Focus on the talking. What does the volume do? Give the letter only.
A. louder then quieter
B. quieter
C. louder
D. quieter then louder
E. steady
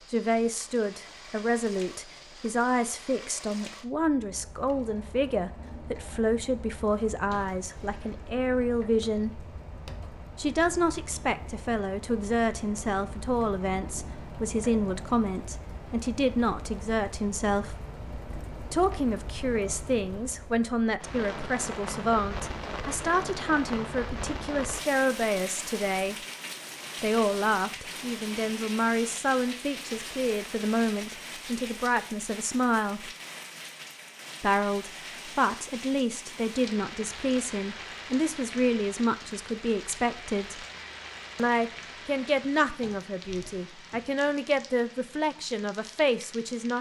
E.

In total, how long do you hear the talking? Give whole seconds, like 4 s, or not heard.
42 s.